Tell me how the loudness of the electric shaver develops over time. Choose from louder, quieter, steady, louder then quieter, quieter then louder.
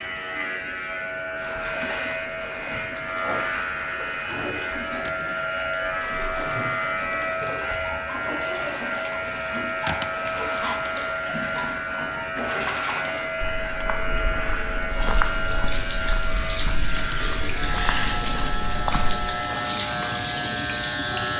steady.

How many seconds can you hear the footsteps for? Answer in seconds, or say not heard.
6 s.